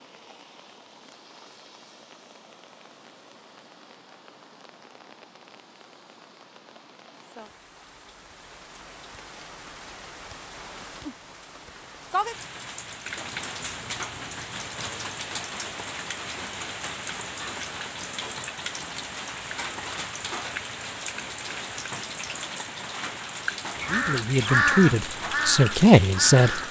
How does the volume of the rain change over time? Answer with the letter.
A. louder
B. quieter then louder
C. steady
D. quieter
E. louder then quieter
A.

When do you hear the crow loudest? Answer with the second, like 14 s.
25 s.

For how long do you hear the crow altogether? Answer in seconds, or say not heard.
3 s.